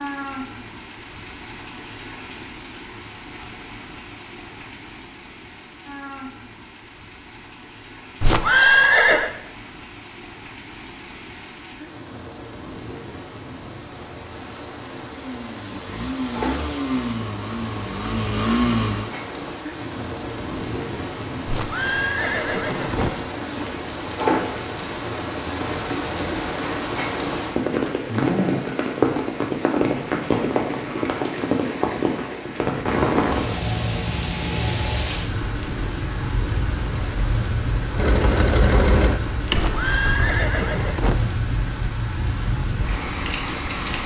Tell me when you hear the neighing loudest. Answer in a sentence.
The volume of the neighing peaks at 9 seconds.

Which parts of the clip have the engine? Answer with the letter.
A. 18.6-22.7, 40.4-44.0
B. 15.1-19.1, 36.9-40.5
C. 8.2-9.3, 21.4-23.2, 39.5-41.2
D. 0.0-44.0
B.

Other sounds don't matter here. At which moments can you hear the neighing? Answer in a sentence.
You can hear the neighing from 8.2 to 9.3 s, from 21.4 to 23.2 s and from 39.5 to 41.2 s.